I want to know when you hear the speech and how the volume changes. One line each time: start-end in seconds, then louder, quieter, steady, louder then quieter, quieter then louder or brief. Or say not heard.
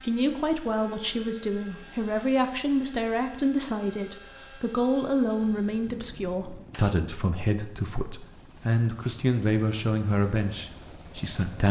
0.0-11.6 steady.